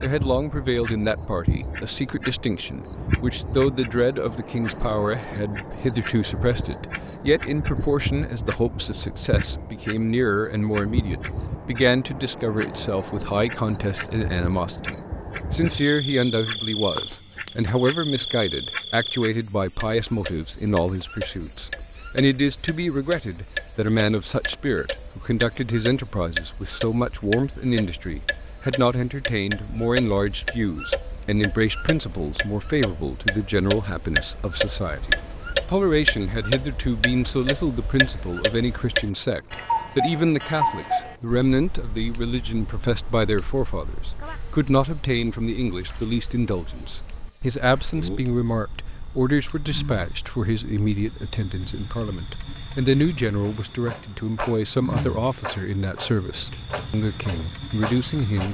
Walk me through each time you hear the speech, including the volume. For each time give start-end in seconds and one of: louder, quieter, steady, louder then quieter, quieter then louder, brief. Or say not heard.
0.0-58.4 steady.